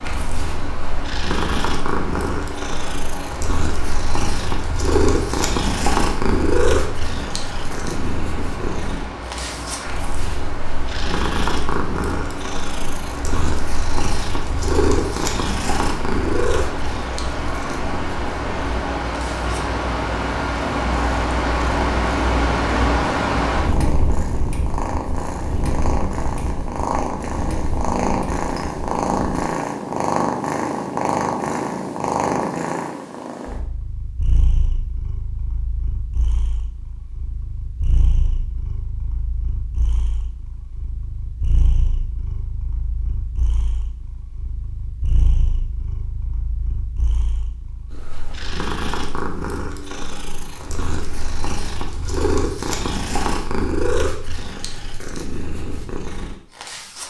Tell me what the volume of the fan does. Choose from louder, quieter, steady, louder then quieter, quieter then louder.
louder.